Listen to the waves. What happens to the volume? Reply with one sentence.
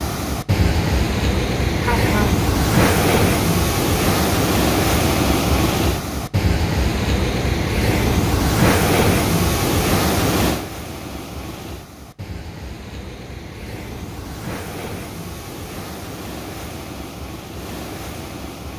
The volume of the waves goes down.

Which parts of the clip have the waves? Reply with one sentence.
You can hear the waves from 0.0 to 18.7 s.